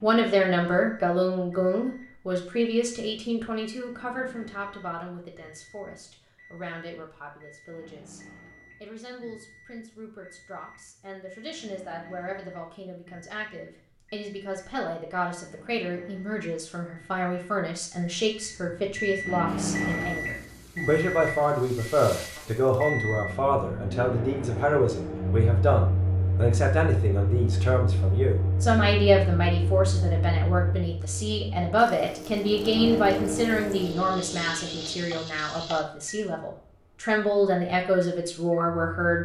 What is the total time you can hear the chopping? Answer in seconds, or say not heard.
not heard.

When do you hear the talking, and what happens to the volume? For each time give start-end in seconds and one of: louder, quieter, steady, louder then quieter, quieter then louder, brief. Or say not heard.
0.0-8.2 quieter
8.8-39.1 louder.